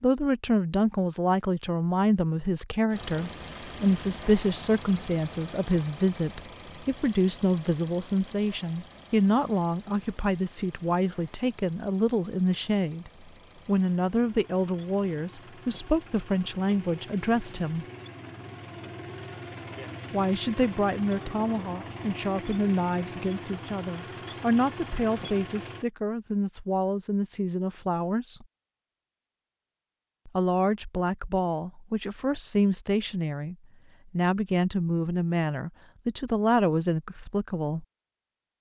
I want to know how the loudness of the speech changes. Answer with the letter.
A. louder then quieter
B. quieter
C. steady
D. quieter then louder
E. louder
C.